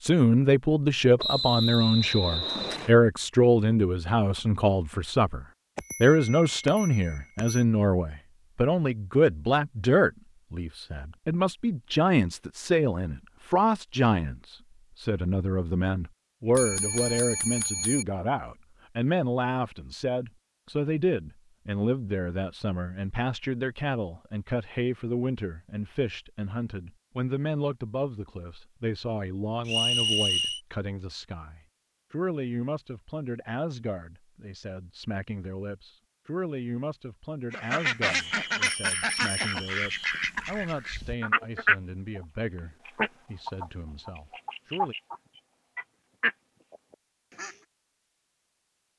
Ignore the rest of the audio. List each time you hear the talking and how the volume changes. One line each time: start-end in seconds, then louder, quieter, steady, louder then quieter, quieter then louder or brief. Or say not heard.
0.0-45.0 quieter.